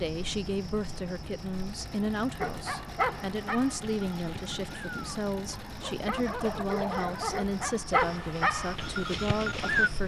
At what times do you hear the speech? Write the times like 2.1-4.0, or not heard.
0.0-10.0.